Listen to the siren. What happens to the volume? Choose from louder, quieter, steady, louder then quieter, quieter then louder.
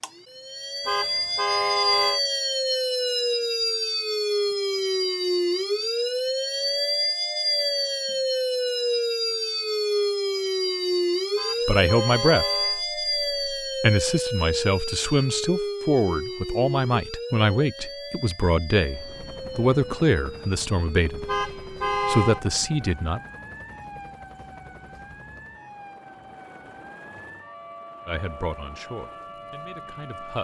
quieter.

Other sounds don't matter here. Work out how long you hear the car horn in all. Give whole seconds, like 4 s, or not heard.
4 s.